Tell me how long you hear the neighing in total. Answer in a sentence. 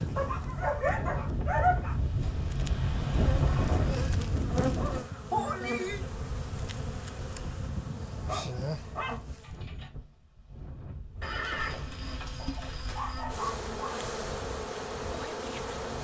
You can hear the neighing for 4 seconds altogether.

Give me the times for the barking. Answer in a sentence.
The barking can be heard from 0.1 to 1.9 s, from 4.5 to 5.7 s, from 8.2 to 9.9 s and from 12.3 to 14.1 s.